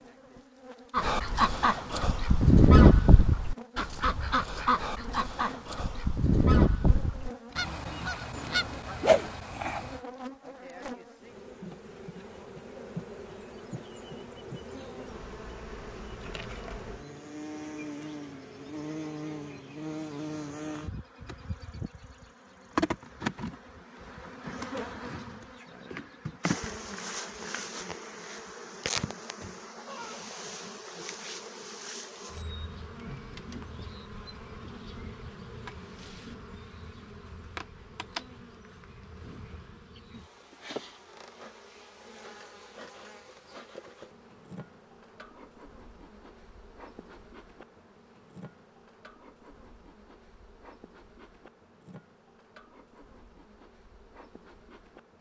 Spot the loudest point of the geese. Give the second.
3 s.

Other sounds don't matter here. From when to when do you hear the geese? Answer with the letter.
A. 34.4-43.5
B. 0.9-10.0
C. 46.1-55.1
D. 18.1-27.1
B.